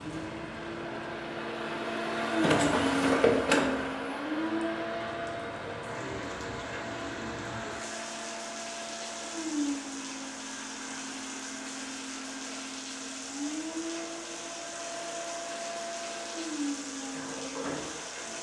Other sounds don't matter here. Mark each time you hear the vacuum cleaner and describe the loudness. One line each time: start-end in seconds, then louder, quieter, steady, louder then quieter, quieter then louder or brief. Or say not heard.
0.0-18.3 quieter.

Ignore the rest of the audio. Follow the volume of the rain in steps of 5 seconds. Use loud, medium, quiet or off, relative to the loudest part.
medium, loud, loud, loud.